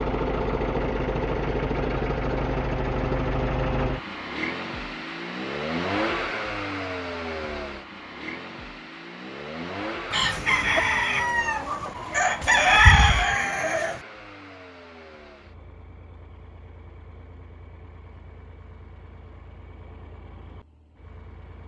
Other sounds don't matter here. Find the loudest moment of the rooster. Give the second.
13 s.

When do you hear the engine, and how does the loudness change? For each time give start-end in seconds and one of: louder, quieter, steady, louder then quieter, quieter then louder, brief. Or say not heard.
0.0-21.6 quieter.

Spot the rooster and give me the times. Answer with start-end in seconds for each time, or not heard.
10.1-14.0.